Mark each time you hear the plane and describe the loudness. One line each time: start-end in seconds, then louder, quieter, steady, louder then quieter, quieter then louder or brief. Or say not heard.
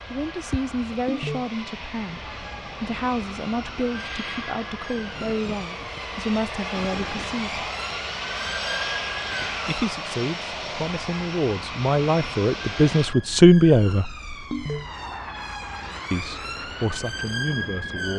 0.0-18.1 louder then quieter.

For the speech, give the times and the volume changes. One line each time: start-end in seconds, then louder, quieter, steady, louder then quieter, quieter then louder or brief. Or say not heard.
0.1-7.6 steady
9.7-14.1 louder
16.1-18.1 brief.